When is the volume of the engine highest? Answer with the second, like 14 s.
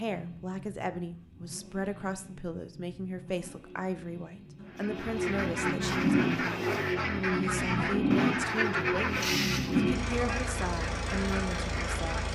8 s.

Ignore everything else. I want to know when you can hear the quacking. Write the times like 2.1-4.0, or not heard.
4.7-12.2.